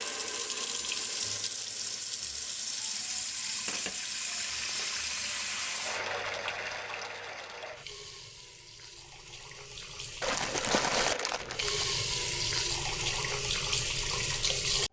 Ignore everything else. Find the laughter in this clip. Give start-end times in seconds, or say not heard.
not heard.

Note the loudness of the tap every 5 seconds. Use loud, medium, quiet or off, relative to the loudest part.
loud, medium, loud.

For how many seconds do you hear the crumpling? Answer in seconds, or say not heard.
3 s.